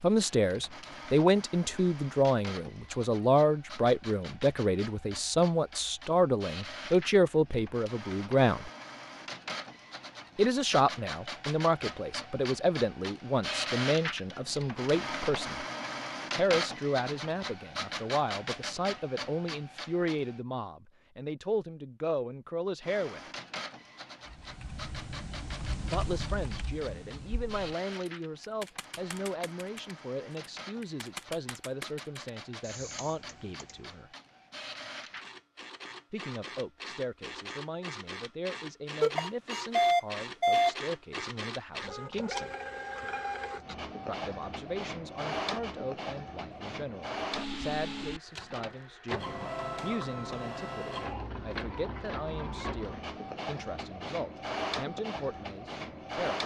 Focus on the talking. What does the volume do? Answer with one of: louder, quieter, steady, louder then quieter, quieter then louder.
quieter.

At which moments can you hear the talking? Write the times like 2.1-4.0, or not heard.
0.0-8.7, 10.3-15.7, 16.4-23.2, 25.9-34.1, 36.1-42.5, 44.0-56.4.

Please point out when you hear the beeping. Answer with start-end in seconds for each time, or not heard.
39.0-40.8.